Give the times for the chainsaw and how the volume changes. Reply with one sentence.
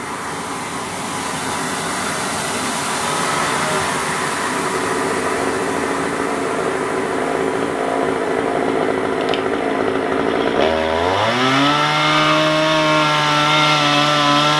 You can hear the chainsaw from 2.9 to 14.5 s, getting louder.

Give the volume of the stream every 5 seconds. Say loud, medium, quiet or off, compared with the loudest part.
loud, loud, medium.